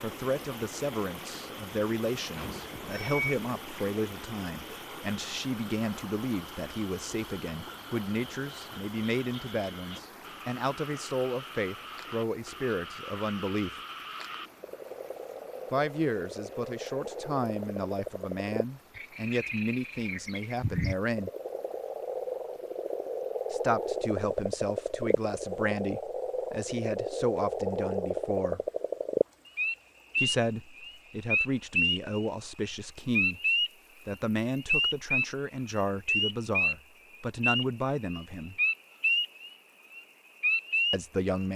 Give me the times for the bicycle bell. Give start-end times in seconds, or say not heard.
2.4-3.4.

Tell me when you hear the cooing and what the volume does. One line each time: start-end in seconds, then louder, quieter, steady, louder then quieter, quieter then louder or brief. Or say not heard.
not heard.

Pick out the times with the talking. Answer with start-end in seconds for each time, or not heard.
0.0-13.8, 15.7-21.3, 23.5-28.6, 30.1-33.4, 34.0-38.5, 40.9-41.5.